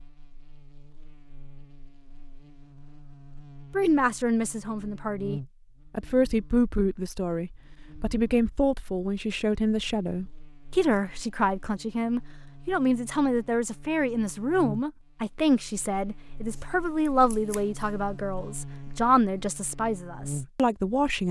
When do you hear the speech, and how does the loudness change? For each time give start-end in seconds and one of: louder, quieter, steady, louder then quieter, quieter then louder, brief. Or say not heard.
3.7-21.2 steady.